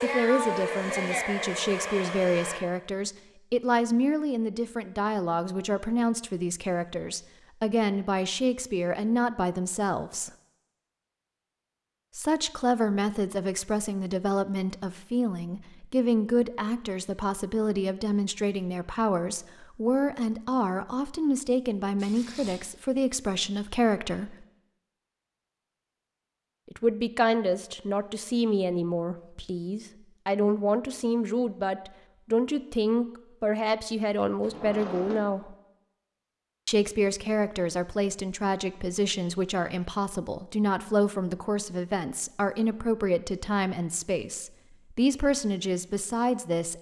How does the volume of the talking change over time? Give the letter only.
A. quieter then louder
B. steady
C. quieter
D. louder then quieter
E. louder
B.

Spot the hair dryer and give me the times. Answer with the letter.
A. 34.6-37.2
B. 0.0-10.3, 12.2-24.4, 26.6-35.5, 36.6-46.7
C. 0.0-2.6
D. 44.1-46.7
C.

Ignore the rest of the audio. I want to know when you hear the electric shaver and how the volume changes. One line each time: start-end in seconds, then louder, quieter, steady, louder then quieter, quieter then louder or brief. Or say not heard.
not heard.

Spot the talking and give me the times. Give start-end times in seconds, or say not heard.
0.0-10.3, 12.2-24.4, 26.6-35.5, 36.6-46.7.